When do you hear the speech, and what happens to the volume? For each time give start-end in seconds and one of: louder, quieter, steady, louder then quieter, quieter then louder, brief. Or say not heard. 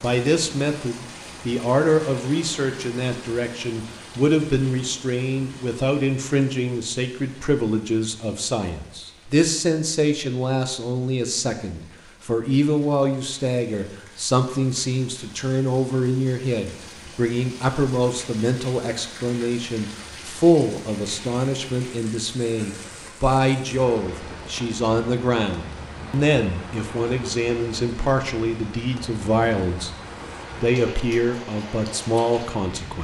0.0-29.9 steady
30.6-32.9 brief.